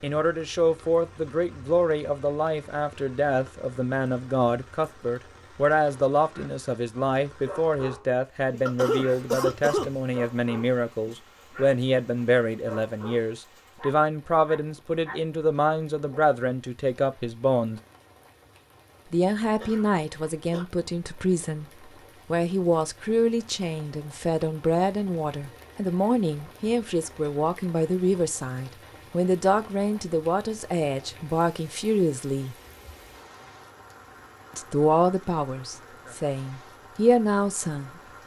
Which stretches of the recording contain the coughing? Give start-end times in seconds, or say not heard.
8.7-9.9, 19.6-20.6.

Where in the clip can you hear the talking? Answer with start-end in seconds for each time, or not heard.
0.0-17.8, 19.1-32.5, 34.5-38.0.